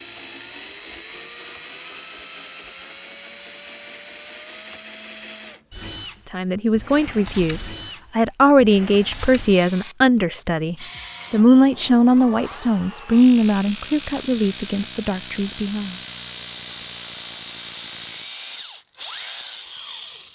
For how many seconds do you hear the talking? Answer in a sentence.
The talking can be heard for 10 seconds in total.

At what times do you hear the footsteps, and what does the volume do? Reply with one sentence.
You can't hear the footsteps here.